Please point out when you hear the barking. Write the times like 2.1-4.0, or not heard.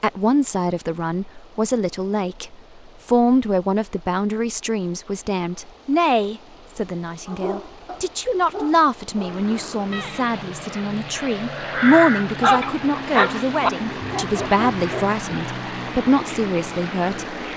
7.2-10.3, 11.1-15.1.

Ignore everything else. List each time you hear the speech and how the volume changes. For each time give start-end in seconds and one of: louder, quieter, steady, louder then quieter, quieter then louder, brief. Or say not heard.
0.0-17.4 steady.